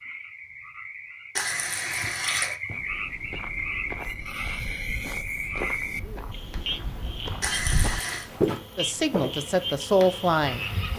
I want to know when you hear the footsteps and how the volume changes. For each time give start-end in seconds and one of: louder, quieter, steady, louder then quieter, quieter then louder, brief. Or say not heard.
2.7-9.4 louder.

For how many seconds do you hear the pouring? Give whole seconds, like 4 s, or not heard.
2 s.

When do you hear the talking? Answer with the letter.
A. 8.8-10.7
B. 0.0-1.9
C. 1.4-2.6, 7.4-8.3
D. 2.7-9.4
A.